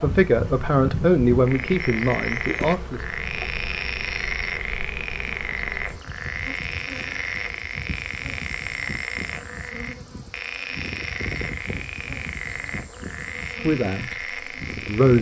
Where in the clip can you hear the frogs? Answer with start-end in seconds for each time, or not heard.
0.0-15.1.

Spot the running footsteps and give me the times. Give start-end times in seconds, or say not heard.
not heard.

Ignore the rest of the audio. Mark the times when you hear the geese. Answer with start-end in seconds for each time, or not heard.
not heard.